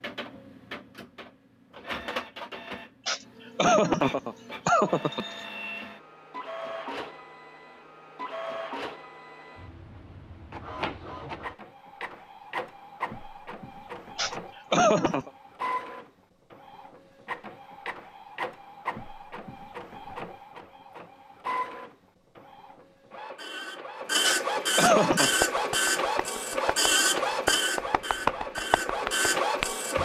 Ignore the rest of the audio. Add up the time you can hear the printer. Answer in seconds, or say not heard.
30 s.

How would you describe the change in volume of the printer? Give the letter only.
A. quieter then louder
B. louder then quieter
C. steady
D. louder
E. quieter
D.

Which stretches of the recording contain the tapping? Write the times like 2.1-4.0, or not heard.
25.2-29.8.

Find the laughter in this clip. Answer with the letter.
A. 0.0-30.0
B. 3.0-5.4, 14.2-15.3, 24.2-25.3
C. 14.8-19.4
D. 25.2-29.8
B.